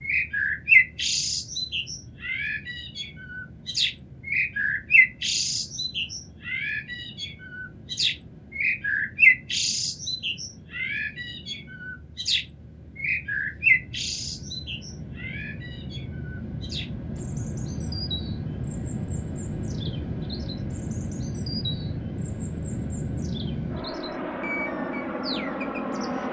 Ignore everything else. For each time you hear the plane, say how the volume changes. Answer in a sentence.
You can hear the plane from 0.0 to 26.2 s, getting louder.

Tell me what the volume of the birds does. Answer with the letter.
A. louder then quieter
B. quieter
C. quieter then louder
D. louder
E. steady
B.